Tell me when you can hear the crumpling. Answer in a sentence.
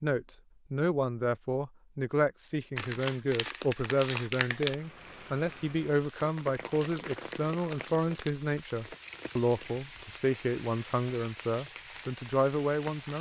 The crumpling can be heard from 2.8 to 4.8 s and from 6.7 to 8.3 s.